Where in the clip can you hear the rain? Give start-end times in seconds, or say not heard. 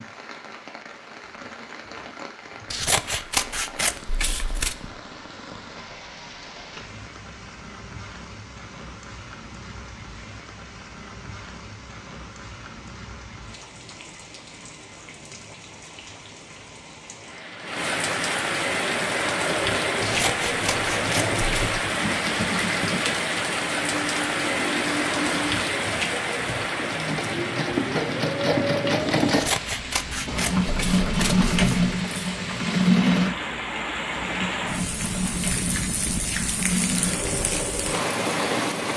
0.0-38.9.